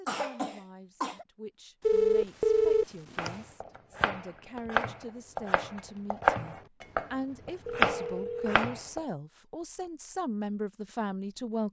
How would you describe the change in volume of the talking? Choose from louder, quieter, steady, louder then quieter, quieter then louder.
louder.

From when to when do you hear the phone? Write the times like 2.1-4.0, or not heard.
1.8-3.3, 7.7-8.6.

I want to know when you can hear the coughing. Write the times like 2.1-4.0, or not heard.
0.1-1.2.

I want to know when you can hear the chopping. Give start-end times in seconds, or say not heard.
3.1-9.0.